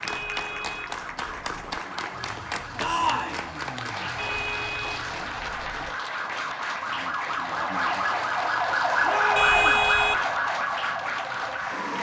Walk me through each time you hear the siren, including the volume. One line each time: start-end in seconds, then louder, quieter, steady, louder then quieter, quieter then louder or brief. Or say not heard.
0.0-11.9 louder.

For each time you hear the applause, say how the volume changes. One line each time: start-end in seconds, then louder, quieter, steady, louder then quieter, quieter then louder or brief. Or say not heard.
0.0-11.9 steady.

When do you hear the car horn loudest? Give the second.
10 s.